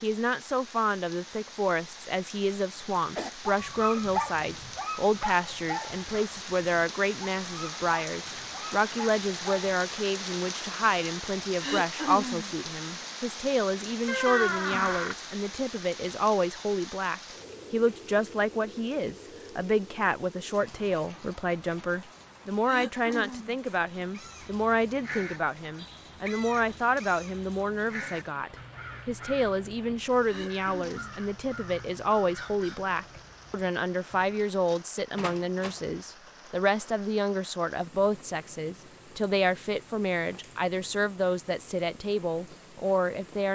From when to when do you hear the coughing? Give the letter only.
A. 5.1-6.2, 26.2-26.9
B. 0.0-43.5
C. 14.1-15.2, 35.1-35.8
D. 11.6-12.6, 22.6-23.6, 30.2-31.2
D.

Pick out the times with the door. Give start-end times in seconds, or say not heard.
14.1-15.2, 35.1-35.8.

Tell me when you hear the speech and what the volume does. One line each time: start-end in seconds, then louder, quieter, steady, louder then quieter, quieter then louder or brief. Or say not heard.
0.0-43.5 steady.